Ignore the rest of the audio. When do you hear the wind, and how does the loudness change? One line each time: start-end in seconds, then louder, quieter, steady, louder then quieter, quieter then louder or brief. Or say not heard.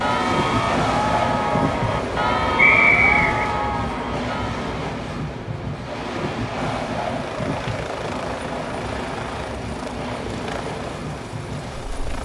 0.0-12.2 quieter.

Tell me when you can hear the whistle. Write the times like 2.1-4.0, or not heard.
2.5-3.4.